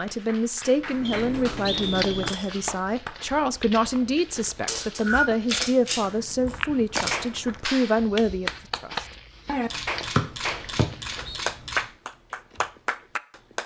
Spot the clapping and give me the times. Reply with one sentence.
You can hear the clapping from 0.0 to 3.2 s and from 7.1 to 13.6 s.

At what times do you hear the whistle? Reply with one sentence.
The whistle can be heard from 1.1 to 2.5 s, from 4.7 to 5.2 s and from 10.2 to 11.4 s.